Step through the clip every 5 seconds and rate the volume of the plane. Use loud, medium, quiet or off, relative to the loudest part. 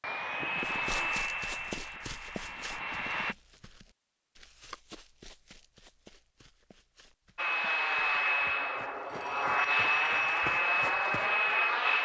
medium, loud, loud.